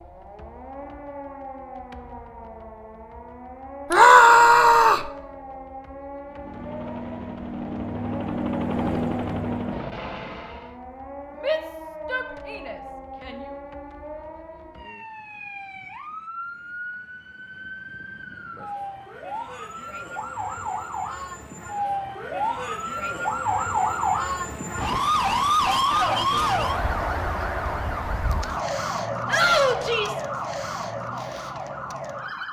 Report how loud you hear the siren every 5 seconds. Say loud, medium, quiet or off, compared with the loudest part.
quiet, quiet, quiet, quiet, loud, loud, medium.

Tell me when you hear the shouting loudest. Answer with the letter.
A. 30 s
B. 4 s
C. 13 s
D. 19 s
B.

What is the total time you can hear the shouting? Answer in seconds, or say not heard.
4 s.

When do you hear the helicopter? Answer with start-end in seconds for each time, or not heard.
6.2-10.8.